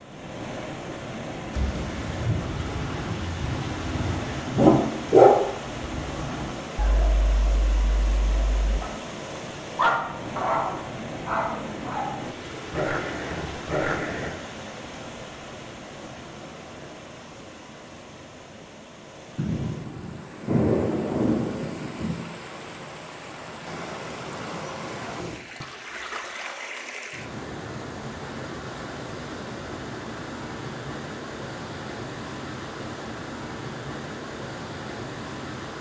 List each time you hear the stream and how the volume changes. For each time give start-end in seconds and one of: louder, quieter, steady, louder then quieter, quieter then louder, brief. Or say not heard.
0.0-35.7 quieter then louder.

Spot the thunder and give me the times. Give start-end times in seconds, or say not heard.
1.5-4.4, 19.4-22.2.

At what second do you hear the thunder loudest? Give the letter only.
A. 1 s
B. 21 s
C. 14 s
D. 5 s
B.